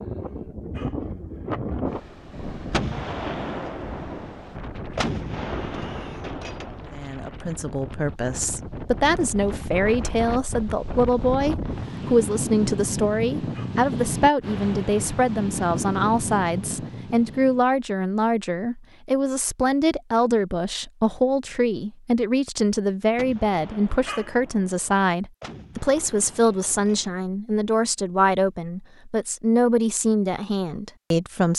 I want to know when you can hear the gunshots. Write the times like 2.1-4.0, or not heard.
2.7-7.1, 23.1-27.2.